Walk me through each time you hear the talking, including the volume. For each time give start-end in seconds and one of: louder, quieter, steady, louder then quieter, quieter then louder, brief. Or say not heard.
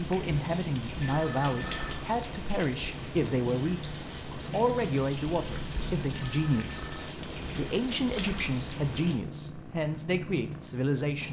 0.0-11.2 steady.